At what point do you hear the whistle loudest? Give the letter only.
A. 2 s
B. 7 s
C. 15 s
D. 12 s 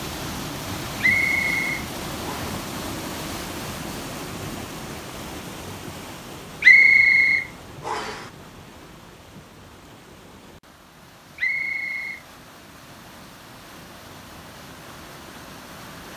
B.